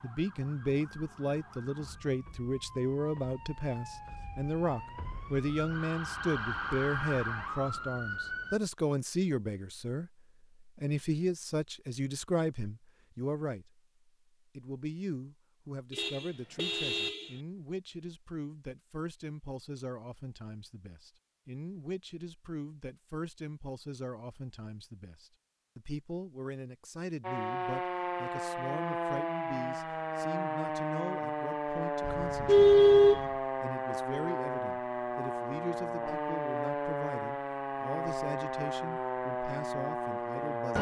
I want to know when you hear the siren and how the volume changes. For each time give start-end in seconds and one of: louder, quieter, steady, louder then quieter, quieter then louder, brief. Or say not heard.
0.0-8.6 louder
27.2-40.7 steady.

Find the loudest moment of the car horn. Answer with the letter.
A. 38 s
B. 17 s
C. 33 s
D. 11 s
C.